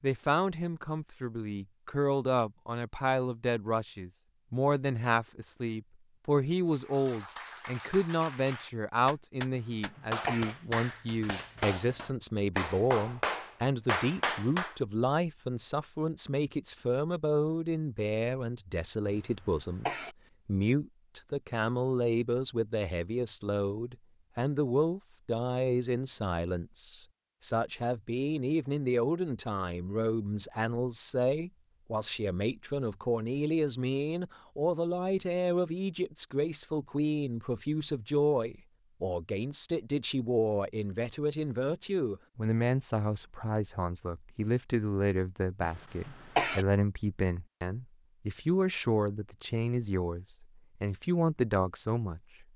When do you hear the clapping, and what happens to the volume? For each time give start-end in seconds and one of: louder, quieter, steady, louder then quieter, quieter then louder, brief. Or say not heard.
6.7-14.8 louder.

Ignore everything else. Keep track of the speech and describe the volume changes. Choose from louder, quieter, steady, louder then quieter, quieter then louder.
steady.